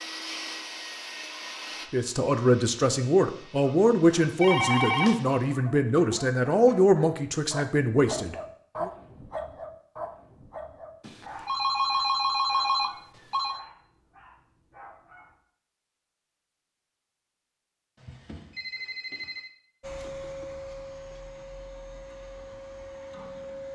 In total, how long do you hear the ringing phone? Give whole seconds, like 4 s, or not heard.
5 s.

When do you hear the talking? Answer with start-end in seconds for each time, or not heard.
1.9-8.9.